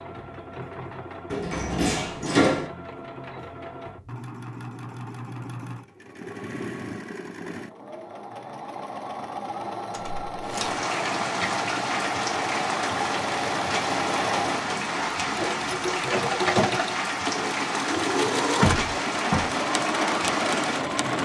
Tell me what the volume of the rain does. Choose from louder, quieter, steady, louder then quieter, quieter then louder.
steady.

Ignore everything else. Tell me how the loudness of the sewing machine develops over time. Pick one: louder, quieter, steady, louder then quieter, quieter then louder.
louder.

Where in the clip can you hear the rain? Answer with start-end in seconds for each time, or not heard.
10.4-21.1.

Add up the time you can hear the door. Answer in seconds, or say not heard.
3 s.